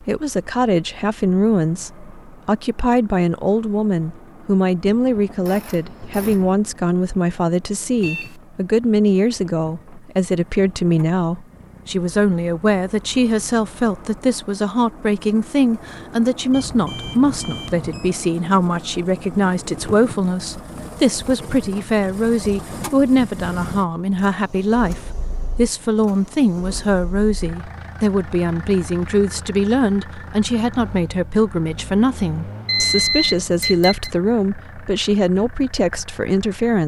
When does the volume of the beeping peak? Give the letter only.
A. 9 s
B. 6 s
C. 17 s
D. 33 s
D.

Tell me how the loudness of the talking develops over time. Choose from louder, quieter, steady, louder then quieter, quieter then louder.
steady.